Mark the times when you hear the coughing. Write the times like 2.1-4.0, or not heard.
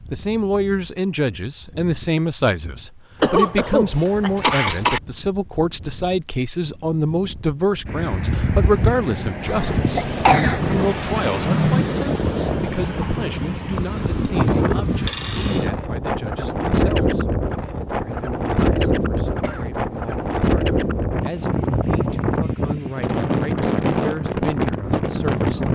3.2-5.0, 9.4-10.7, 19.4-20.2.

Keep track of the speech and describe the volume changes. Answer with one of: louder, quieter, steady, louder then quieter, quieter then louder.
quieter.